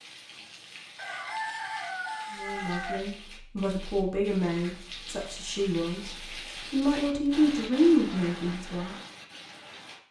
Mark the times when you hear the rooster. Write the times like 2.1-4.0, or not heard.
0.9-3.0.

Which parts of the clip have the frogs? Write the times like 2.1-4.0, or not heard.
not heard.